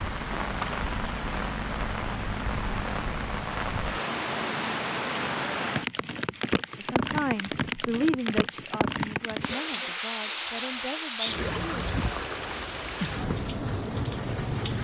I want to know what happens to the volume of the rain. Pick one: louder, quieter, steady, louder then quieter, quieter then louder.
steady.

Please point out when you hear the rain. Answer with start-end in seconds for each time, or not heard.
0.0-14.7.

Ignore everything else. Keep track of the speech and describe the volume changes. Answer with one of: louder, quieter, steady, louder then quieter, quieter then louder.
quieter.